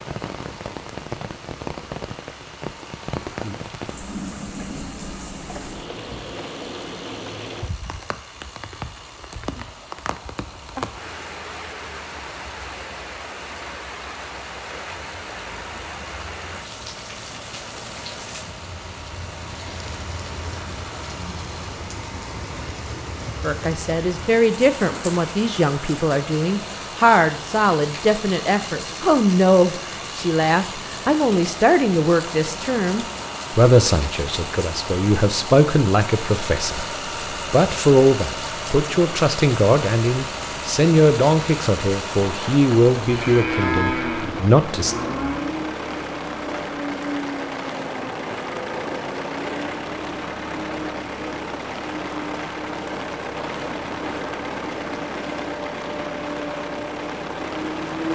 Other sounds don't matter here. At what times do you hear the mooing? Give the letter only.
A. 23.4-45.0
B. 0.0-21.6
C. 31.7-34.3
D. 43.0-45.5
D.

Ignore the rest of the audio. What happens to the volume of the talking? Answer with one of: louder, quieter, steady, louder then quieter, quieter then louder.
steady.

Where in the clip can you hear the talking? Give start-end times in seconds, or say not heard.
23.4-45.0.